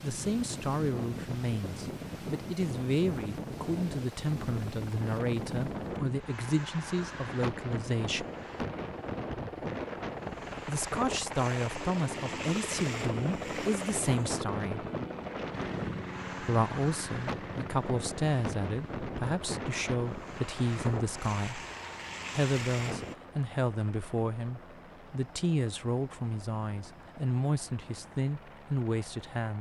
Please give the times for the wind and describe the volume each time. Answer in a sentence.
The wind can be heard from 0.0 to 23.1 s, at a steady volume.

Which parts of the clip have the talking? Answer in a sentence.
You can hear the talking from 0.0 to 8.2 s, from 10.7 to 14.8 s, from 16.4 to 21.6 s and from 22.4 to 29.5 s.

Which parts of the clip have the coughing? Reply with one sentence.
You can't hear the coughing here.